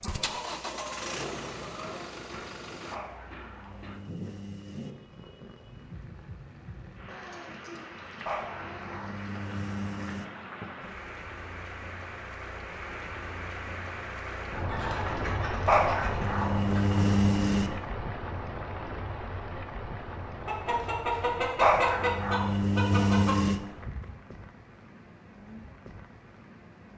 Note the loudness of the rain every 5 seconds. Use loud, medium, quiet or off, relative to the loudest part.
medium, medium, loud, loud, medium, quiet.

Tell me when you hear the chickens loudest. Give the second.
22 s.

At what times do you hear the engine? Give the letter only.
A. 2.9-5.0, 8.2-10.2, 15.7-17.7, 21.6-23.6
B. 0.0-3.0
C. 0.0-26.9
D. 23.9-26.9
B.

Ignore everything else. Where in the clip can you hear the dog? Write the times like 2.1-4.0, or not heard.
2.9-5.0, 8.2-10.2, 15.7-17.7, 21.6-23.6.